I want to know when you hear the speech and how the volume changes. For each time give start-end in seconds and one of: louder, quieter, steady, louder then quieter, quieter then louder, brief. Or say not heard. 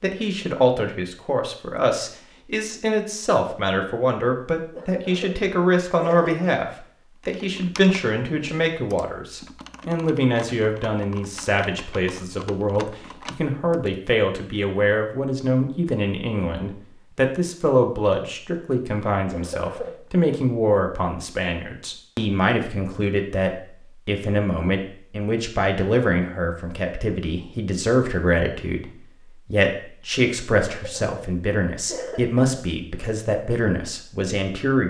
0.0-34.8 steady.